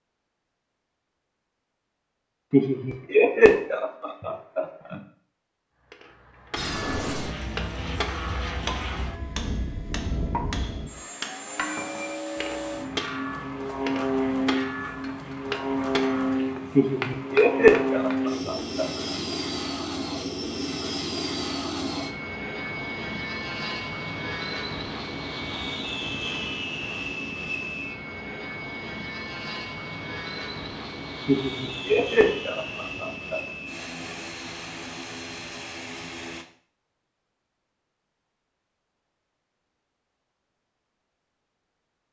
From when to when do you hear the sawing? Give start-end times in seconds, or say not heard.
not heard.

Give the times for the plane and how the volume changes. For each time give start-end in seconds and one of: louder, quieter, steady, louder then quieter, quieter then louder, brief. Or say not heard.
6.5-36.5 louder then quieter.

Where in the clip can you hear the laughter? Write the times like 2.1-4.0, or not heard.
2.5-5.0, 16.8-18.9, 31.2-33.4.